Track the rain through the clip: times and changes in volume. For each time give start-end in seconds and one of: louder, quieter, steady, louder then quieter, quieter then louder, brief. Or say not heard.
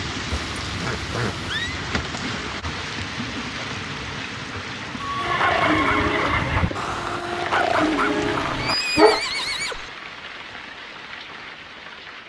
0.0-12.2 quieter.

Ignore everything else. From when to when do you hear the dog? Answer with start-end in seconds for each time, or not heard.
5.2-9.2.